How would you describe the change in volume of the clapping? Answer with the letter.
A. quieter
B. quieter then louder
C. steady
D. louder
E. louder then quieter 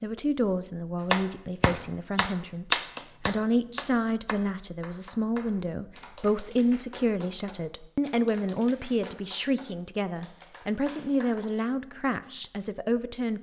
A.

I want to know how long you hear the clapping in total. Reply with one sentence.
The clapping can be heard for 10 seconds in total.